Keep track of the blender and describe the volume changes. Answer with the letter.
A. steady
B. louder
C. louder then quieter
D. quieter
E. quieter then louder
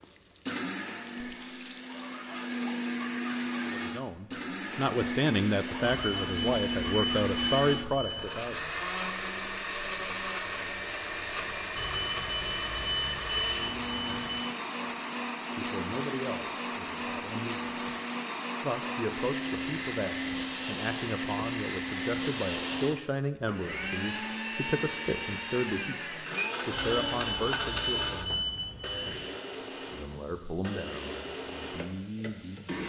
A.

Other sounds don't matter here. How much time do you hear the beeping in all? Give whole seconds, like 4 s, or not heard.
8 s.